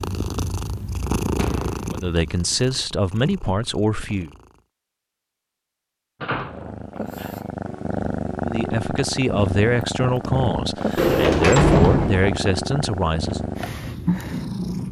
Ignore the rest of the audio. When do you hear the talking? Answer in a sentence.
The talking can be heard from 1.9 to 4.3 s and from 8.4 to 13.4 s.